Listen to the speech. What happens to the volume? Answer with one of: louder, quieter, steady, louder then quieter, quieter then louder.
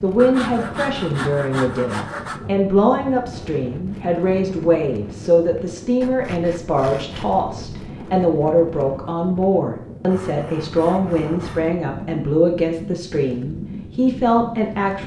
steady.